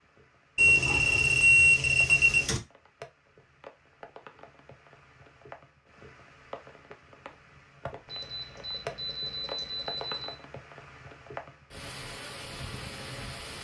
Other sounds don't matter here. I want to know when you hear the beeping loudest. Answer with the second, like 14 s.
2 s.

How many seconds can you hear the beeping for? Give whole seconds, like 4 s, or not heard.
4 s.